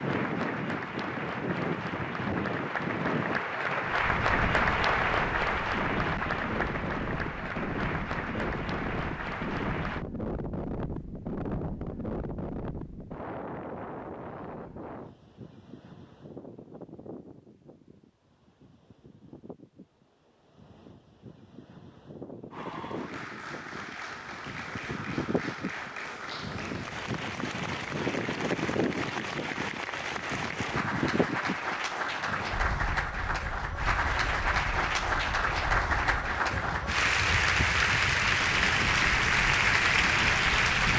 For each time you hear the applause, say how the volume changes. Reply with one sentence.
You can hear the applause from 0.0 to 10.1 s, getting louder then quieter; and from 22.5 to 40.9 s, getting louder.